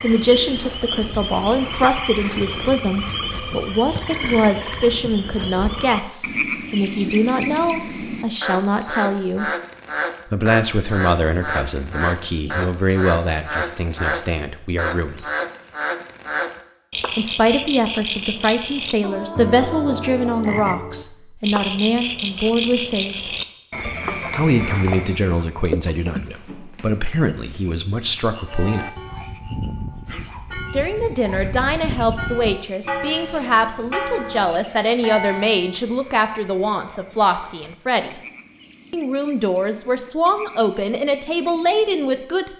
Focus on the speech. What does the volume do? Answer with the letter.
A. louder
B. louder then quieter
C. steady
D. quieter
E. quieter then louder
C.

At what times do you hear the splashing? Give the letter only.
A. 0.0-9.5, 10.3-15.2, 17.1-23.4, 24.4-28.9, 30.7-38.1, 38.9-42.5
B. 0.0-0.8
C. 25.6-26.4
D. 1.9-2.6
C.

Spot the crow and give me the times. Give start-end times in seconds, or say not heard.
not heard.